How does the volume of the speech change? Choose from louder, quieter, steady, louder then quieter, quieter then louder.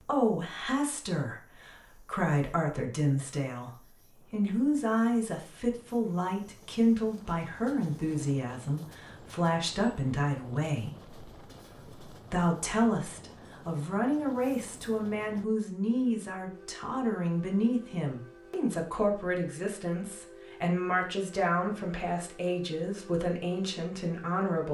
steady.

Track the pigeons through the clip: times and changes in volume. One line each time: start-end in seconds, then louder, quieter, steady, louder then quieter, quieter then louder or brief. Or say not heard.
not heard.